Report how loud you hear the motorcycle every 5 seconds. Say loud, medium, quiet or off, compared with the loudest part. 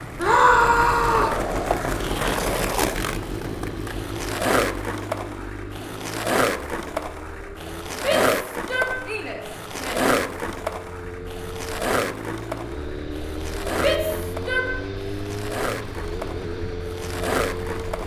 loud, medium, loud, loud.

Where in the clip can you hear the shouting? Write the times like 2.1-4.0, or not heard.
0.1-1.4, 8.0-10.1, 13.8-14.8.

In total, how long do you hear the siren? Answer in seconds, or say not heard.
not heard.